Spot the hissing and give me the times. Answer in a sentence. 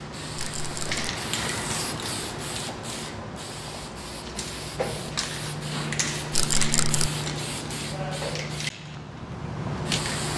You can hear the hissing from 0.0 to 10.3 s.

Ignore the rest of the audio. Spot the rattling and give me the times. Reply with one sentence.
The rattling can be heard from 0.3 to 1.0 s and from 6.3 to 7.1 s.